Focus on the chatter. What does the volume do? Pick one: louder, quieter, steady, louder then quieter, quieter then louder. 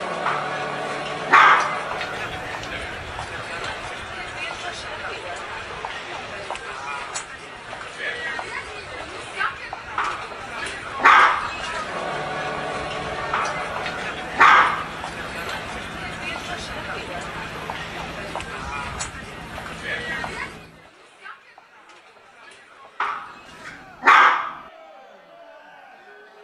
quieter.